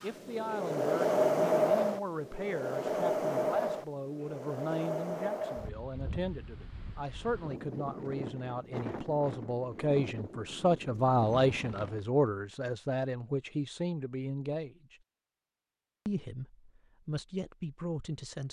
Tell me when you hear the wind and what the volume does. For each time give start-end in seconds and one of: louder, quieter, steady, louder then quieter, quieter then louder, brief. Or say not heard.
0.0-12.1 quieter.